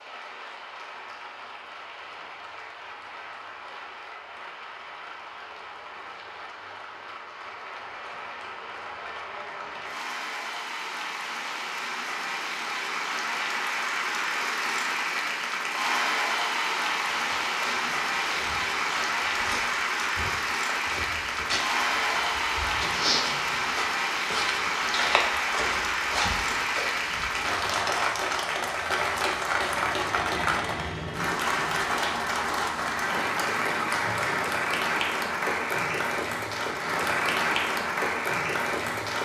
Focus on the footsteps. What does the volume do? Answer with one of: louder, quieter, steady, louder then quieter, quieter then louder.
louder.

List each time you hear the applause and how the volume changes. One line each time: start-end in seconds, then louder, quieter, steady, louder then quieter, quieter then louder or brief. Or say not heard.
0.0-39.2 louder.